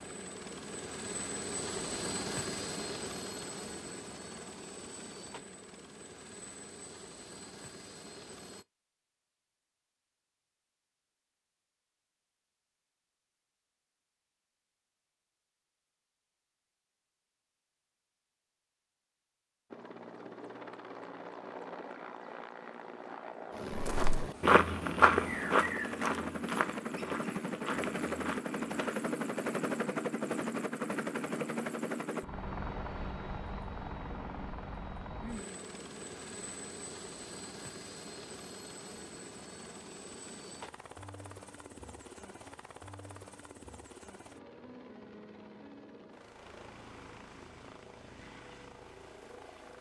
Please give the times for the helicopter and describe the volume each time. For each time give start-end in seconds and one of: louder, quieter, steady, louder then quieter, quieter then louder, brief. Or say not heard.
0.0-8.7 quieter
19.7-49.7 louder then quieter.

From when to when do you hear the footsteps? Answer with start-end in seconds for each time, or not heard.
23.7-29.1.